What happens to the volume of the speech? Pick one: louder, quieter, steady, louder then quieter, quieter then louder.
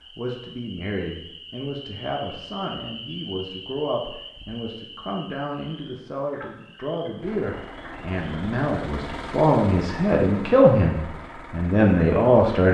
louder.